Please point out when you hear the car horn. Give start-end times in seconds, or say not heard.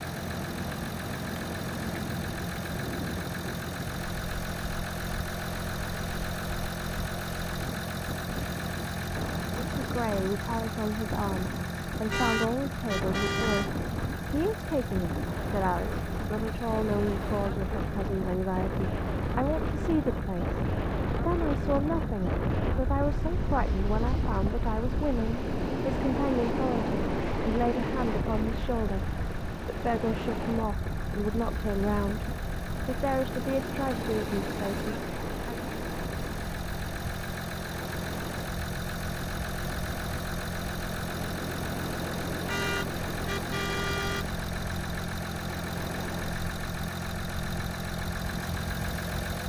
12.1-13.7, 42.5-44.2.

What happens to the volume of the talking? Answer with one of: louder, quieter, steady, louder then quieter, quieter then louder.
steady.